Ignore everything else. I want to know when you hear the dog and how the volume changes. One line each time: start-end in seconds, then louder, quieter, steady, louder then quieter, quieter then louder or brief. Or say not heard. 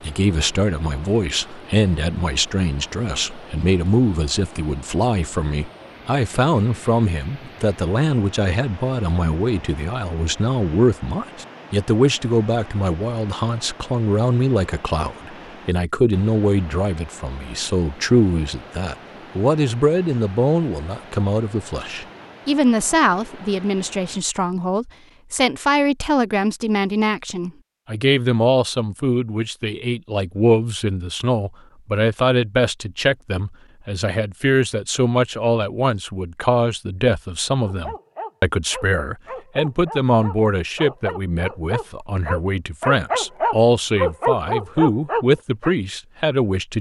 37.6-45.8 louder.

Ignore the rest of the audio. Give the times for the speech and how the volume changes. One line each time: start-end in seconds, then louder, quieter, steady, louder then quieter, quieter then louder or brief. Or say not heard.
0.0-46.7 steady.